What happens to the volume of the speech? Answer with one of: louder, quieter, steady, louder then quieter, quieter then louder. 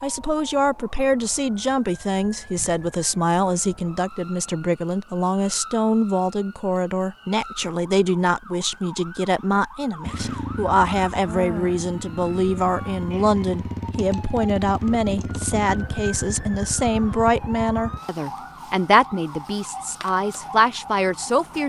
steady.